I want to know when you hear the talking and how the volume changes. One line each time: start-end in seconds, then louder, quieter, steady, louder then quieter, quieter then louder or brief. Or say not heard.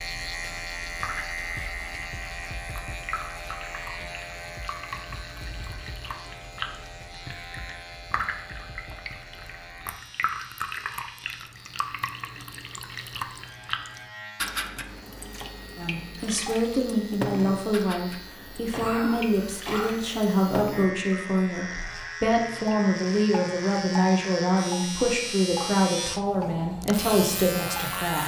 15.8-28.2 steady.